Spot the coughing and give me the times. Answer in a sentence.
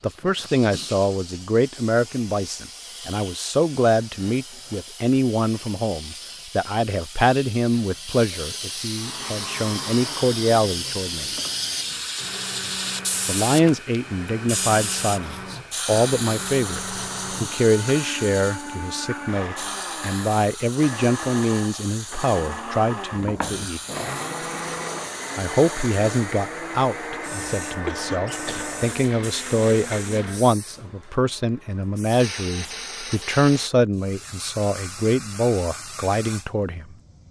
You can hear the coughing from 27.9 to 28.8 s.